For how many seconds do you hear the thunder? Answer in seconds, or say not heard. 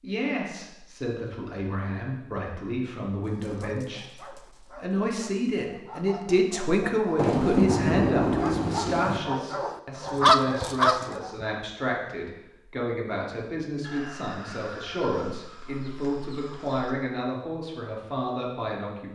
2 s.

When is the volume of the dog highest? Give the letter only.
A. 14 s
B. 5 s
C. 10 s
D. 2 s
C.